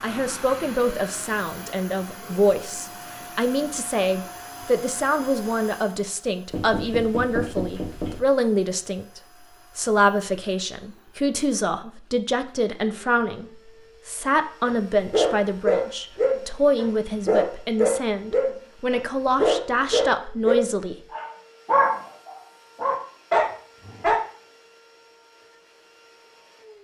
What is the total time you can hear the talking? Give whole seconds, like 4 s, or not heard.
21 s.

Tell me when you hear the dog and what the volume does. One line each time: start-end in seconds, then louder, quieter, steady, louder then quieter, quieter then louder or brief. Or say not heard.
14.7-24.2 steady.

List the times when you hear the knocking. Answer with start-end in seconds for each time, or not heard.
6.5-8.2.